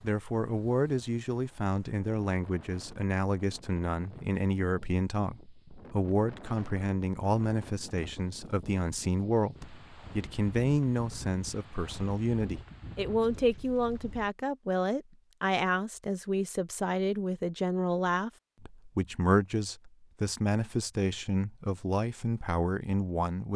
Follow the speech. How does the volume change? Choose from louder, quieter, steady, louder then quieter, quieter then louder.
steady.